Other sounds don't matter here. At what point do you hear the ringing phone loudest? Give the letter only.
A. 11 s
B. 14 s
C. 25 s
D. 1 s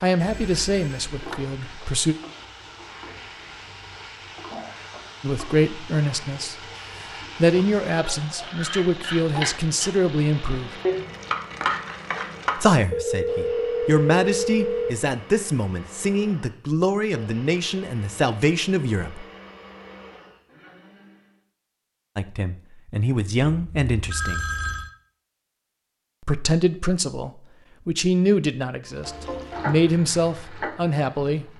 B.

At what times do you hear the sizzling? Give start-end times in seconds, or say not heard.
0.0-12.8, 28.9-31.5.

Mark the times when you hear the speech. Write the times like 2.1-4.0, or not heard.
0.0-2.1, 5.2-10.7, 12.6-19.2, 22.1-24.4, 26.2-31.5.